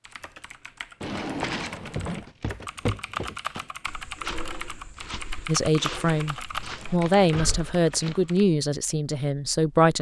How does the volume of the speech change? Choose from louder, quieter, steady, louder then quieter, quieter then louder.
louder then quieter.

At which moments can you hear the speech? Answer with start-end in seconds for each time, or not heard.
5.5-9.9.